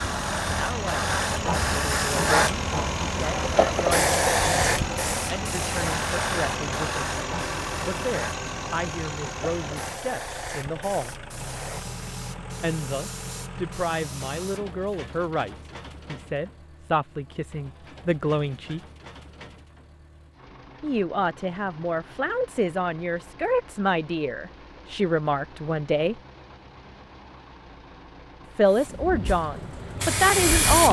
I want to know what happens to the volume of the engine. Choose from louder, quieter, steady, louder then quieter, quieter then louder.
quieter.